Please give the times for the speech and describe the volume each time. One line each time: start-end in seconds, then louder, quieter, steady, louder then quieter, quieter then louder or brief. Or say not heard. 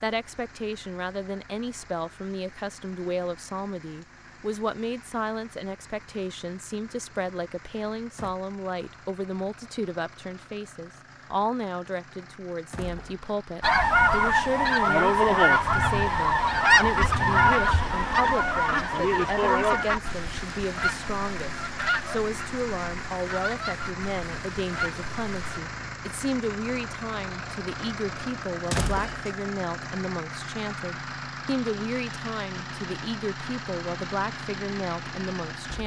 0.0-35.8 steady.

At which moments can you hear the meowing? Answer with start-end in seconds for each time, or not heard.
not heard.